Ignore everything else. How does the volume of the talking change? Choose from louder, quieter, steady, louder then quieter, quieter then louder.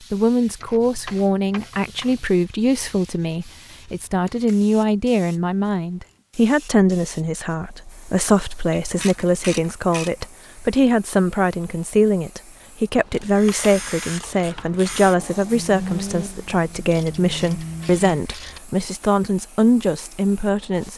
steady.